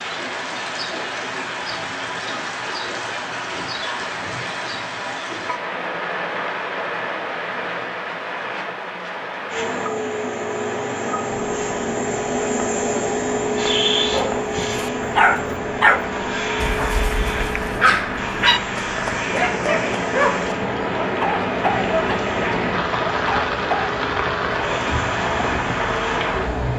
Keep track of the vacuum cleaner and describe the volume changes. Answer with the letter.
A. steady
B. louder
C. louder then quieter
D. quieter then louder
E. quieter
E.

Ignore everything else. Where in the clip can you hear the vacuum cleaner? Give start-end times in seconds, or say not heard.
9.5-26.7.